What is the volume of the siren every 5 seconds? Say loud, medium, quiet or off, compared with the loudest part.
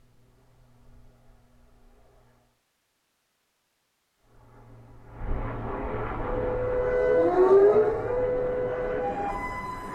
off, loud.